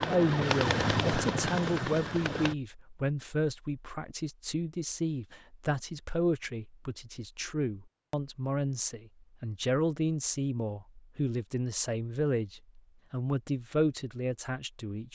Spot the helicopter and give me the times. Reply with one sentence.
The helicopter can be heard from 0.0 to 2.5 s.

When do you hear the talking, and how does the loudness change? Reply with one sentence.
You can hear the talking from 0.1 to 15.1 s, at a steady volume.